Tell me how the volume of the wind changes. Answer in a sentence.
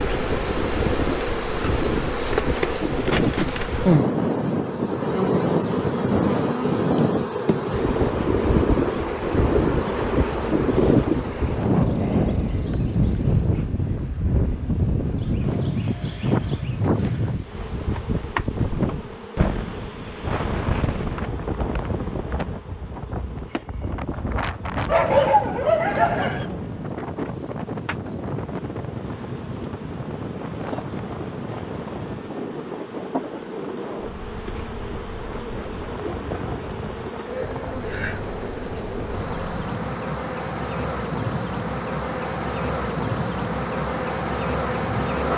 The volume of the wind goes down.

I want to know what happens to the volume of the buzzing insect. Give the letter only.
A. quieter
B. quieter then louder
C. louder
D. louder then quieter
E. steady
B.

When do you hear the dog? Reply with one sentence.
You can hear the dog from 24.9 to 26.4 s.